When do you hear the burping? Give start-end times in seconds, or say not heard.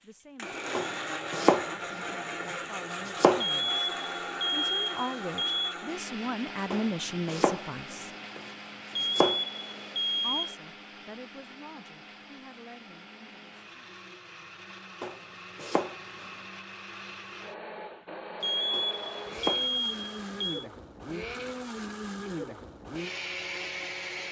not heard.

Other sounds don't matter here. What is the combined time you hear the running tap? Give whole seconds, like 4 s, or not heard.
not heard.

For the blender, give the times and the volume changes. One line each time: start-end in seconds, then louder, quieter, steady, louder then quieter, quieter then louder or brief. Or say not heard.
0.3-24.2 quieter then louder.